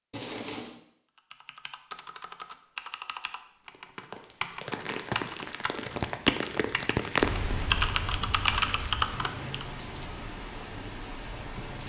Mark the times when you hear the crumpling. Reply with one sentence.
The crumpling can be heard from 0.1 to 0.8 s and from 8.5 to 9.1 s.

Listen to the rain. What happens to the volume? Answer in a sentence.
The volume of the rain goes up, then down.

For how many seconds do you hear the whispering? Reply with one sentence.
The whispering can't be heard in this clip.